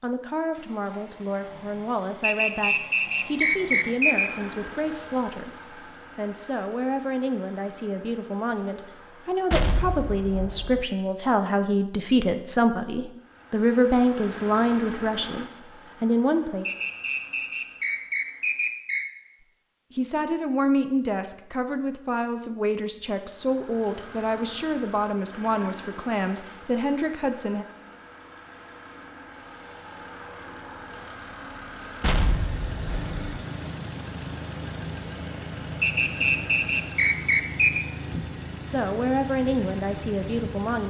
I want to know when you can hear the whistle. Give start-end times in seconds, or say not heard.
2.2-4.3, 16.6-19.1, 35.8-37.9.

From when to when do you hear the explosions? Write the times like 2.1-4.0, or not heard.
9.5-10.8, 32.0-33.1.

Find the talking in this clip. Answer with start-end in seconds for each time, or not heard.
0.0-5.5, 6.2-16.6, 19.9-27.6, 38.6-40.8.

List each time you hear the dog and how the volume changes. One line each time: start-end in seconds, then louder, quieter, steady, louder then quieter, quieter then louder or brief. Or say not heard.
not heard.